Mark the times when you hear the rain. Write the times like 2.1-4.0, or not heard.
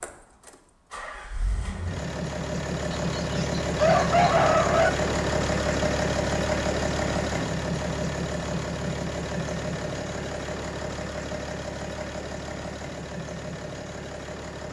not heard.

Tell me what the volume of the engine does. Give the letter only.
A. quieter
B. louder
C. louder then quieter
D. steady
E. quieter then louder
C.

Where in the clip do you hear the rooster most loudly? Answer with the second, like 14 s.
4 s.